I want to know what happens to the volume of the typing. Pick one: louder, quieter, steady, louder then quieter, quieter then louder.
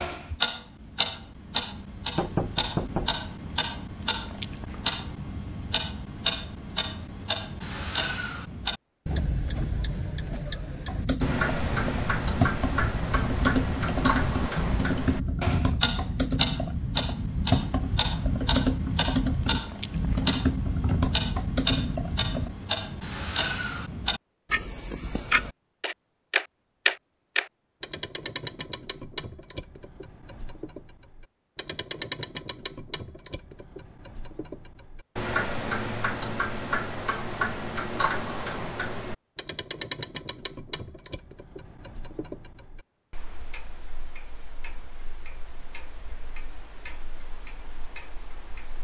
steady.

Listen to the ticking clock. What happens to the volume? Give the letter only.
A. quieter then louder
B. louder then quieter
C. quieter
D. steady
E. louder
C.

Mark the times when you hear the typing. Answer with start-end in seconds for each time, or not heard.
10.8-22.6.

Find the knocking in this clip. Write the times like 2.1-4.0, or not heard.
2.1-3.8.